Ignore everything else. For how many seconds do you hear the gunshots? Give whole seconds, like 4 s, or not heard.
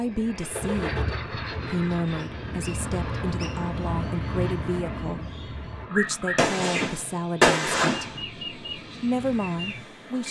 2 s.